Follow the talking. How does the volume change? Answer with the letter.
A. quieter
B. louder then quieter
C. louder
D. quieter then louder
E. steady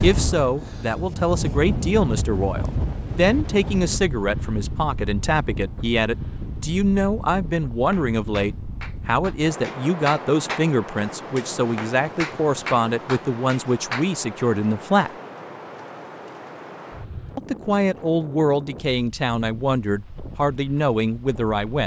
E.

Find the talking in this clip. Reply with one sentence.
The talking can be heard from 0.0 to 15.1 s and from 17.4 to 21.8 s.